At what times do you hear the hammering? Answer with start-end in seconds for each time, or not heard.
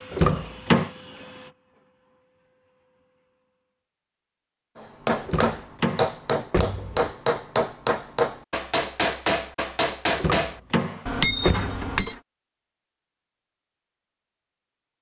4.8-12.2.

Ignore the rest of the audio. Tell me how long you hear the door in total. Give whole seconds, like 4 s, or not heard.
4 s.